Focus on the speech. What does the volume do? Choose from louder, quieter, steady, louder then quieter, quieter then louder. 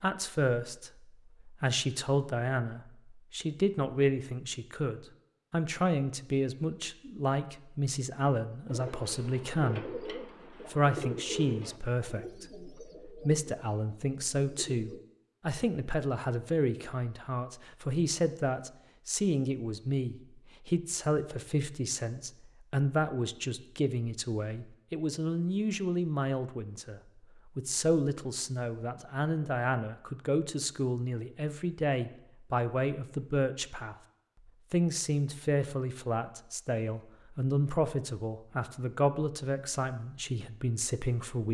steady.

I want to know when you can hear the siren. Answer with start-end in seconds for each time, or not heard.
not heard.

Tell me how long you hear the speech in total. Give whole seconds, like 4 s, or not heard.
41 s.